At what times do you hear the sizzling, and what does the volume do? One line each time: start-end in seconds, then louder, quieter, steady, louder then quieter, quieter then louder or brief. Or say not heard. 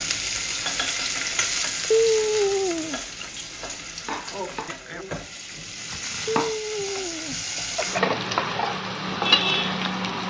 0.0-10.2 quieter then louder.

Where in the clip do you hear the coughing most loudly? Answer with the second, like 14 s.
2 s.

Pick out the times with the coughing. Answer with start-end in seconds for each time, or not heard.
1.9-3.0, 6.2-8.1.